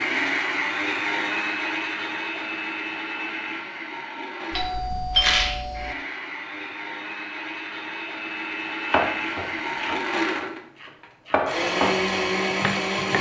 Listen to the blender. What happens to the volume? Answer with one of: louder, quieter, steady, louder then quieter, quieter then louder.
quieter then louder.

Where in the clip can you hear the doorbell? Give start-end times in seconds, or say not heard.
4.5-6.0.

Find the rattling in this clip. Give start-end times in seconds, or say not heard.
5.2-5.7.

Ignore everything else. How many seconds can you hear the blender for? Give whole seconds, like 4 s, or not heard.
13 s.